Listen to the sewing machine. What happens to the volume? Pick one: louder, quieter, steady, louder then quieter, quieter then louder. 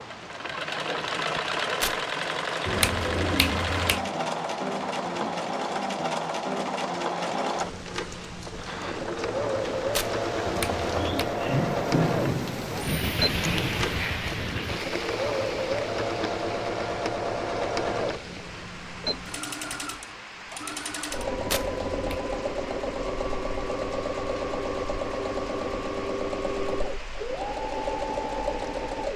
steady.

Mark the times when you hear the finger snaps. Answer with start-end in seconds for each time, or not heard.
2.6-4.0, 10.4-11.3, 21.4-22.2.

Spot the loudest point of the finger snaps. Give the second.
3 s.